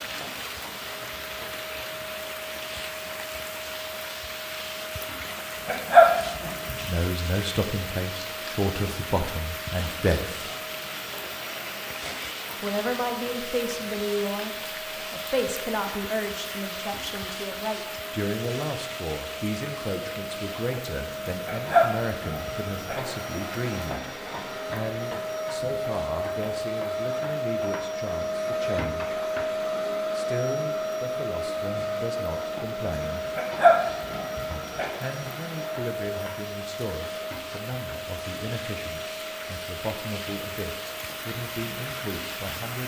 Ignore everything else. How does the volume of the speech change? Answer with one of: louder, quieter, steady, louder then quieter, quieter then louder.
quieter.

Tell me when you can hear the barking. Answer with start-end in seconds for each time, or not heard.
5.7-6.8, 21.4-22.9, 33.4-34.9.